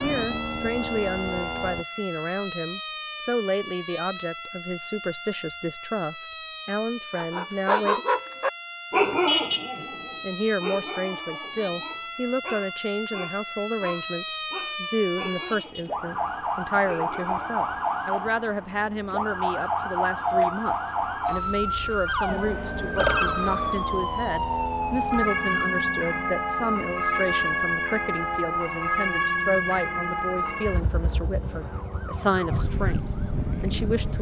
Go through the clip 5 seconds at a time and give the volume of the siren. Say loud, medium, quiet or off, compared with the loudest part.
medium, medium, medium, loud, loud, loud, medium.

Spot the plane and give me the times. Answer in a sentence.
The plane can be heard from 0.0 to 1.9 s and from 22.2 to 34.1 s.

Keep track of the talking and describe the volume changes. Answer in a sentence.
The loudness of the talking stays about the same.